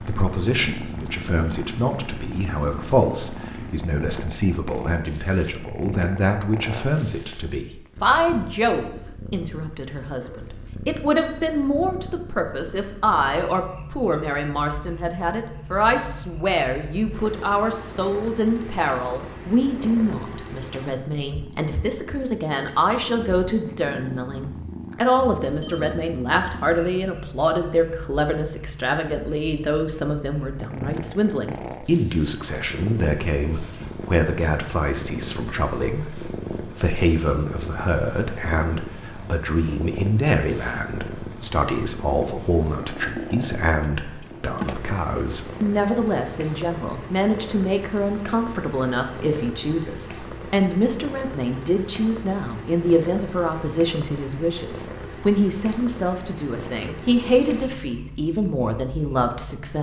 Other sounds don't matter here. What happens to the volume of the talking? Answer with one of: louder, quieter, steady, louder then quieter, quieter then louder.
steady.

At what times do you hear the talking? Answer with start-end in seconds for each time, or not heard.
0.0-59.7.